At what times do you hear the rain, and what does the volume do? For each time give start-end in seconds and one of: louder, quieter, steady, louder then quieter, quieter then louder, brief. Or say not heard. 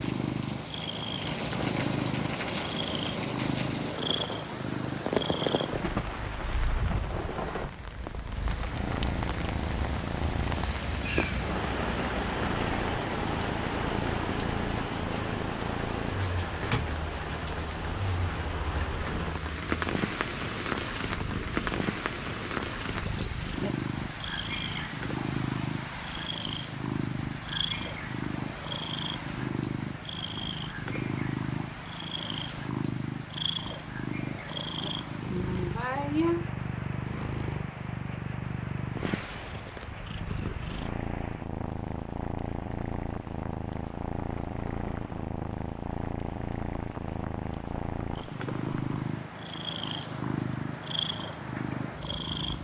0.0-52.2 quieter.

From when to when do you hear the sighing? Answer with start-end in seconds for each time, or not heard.
23.1-23.7, 34.4-36.5.